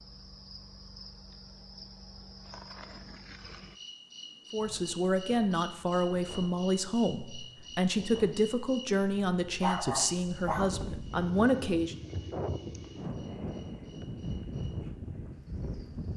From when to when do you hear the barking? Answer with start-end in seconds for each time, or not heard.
9.6-10.8.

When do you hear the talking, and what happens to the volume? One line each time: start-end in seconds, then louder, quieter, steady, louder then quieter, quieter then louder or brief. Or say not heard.
4.5-11.9 steady.